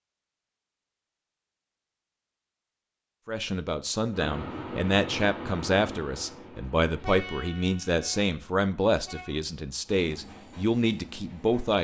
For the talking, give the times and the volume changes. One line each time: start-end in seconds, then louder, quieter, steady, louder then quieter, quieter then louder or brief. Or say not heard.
3.2-11.7 steady.